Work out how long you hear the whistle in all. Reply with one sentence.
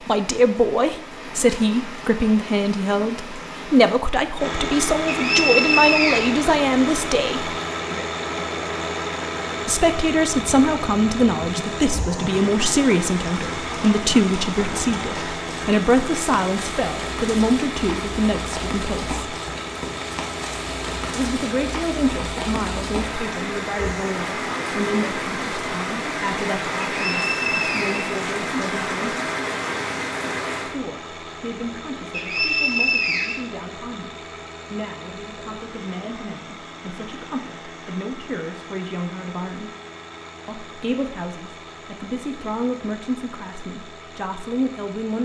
You can hear the whistle for 4 seconds altogether.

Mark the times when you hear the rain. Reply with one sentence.
The rain can be heard from 0.0 to 30.8 s.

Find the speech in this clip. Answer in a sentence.
You can hear the speech from 0.1 to 7.5 s, from 9.7 to 19.1 s, from 21.1 to 29.2 s, from 30.6 to 39.7 s and from 40.5 to 45.2 s.